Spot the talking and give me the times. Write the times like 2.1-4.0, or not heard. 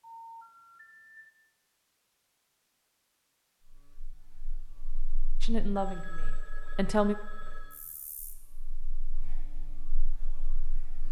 5.4-7.2.